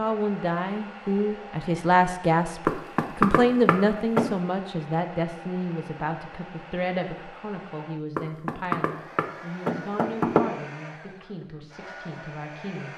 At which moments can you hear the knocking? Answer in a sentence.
The knocking can be heard from 2.6 to 4.3 s and from 8.2 to 10.4 s.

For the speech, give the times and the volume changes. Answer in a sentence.
The speech can be heard from 0.0 to 12.9 s, getting quieter.